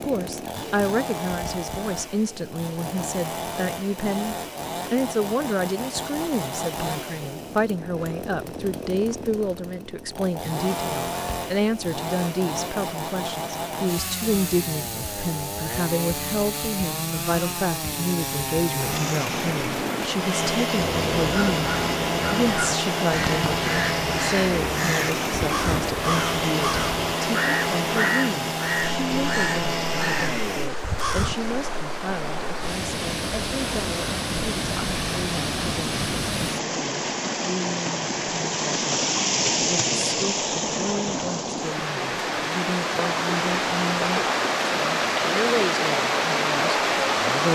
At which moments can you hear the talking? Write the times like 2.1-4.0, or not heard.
0.0-47.5.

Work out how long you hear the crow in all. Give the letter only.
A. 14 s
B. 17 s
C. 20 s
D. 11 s
D.